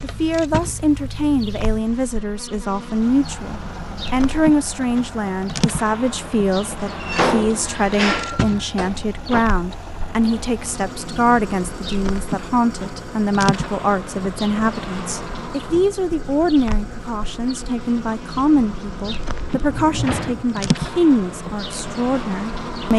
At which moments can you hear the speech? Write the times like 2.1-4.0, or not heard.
0.0-22.9.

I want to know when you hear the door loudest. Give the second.
7 s.